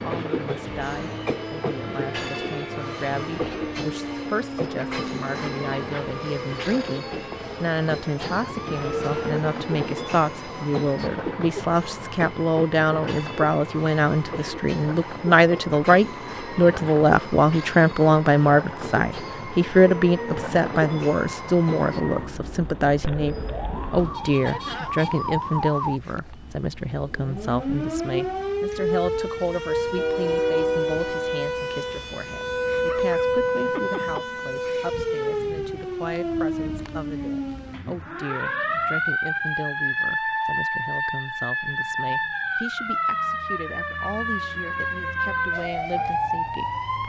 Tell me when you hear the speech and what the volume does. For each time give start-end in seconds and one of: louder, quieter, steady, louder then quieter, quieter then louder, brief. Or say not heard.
0.0-46.8 louder then quieter.